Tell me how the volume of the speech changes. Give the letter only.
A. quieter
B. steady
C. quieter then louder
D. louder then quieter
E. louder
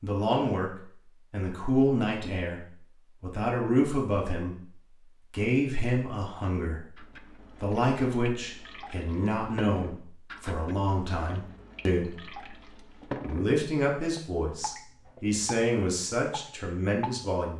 B.